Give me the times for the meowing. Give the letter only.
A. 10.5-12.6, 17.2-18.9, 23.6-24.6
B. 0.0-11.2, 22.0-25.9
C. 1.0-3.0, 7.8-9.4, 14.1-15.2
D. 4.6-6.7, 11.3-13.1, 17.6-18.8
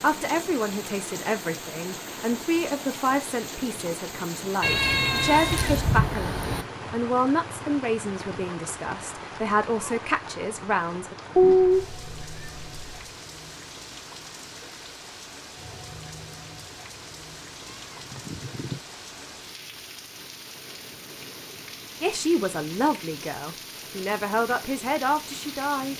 D.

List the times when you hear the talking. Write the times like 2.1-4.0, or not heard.
0.0-11.2, 22.0-25.9.